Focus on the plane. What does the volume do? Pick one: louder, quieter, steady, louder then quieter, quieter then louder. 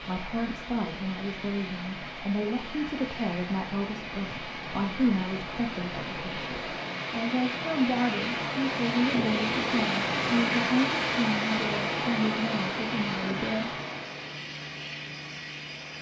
louder then quieter.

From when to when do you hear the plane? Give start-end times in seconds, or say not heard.
0.0-15.9.